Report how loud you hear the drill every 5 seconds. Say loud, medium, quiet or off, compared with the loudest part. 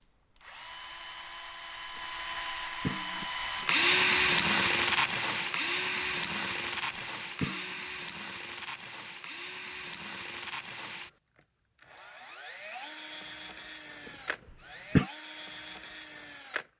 loud, medium, quiet, quiet.